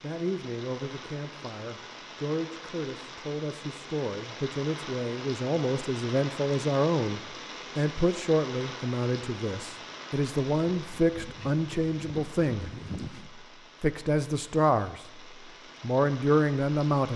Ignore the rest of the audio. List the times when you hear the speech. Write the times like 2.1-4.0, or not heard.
0.0-12.7, 13.8-15.2, 15.8-17.1.